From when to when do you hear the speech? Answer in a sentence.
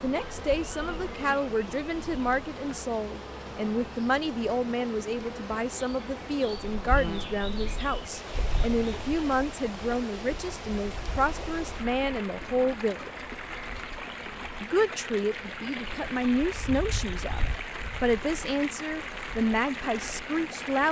The speech can be heard from 0.0 to 13.1 s and from 14.6 to 20.8 s.